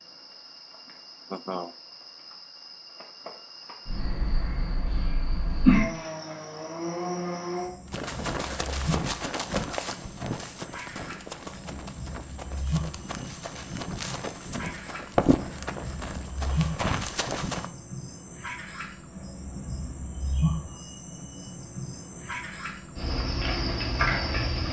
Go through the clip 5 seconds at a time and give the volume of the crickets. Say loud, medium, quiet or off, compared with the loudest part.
quiet, loud, medium, medium, loud.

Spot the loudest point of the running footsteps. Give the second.
15 s.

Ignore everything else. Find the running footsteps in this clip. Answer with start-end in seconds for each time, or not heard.
7.9-17.7.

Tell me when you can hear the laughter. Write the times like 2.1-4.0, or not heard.
1.3-1.8.